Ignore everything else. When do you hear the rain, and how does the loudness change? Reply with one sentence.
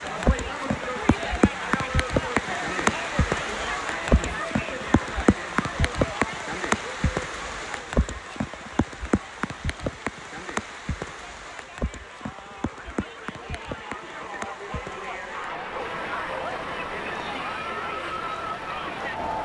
The rain can be heard from 0.0 to 19.4 s, getting quieter.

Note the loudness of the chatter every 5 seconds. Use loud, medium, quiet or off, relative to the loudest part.
loud, medium, medium, loud.